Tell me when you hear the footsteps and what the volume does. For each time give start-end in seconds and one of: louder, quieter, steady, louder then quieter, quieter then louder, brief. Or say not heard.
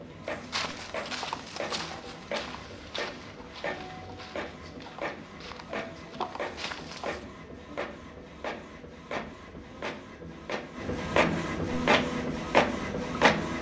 0.2-7.2 quieter then louder.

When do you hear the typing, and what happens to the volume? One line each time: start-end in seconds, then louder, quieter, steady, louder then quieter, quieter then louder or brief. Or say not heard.
not heard.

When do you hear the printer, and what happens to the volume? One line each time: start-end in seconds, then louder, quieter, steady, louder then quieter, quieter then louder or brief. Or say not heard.
0.0-13.5 louder.